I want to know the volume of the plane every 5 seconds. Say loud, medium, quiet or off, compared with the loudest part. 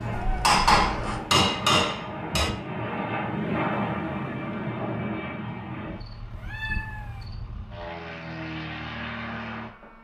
loud, medium.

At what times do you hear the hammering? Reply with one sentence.
You can hear the hammering from 0.0 to 2.5 s.